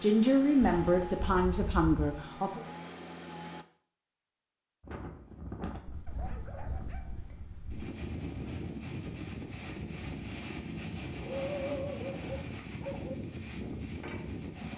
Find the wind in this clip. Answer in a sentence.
You can hear the wind from 4.8 to 14.7 s.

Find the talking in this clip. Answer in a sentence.
You can hear the talking from 0.0 to 2.6 s.